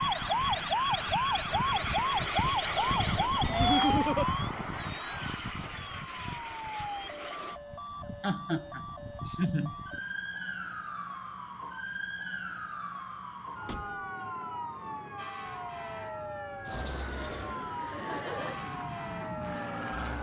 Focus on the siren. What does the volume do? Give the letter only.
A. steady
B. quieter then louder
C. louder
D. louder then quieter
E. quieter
E.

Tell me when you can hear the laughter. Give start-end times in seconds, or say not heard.
3.5-4.2, 8.2-9.8, 17.8-18.6.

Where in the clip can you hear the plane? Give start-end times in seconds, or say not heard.
0.0-7.6, 16.6-20.1.